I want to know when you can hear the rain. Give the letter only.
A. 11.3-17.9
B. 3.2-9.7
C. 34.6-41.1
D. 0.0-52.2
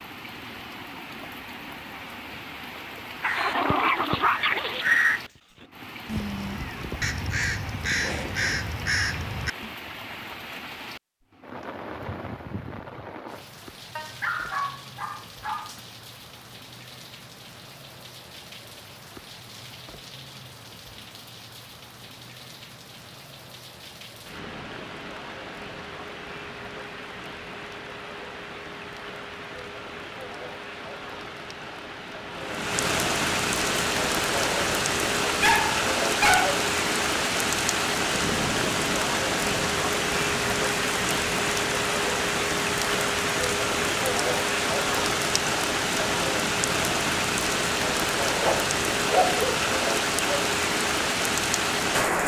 D.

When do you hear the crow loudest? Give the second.
5 s.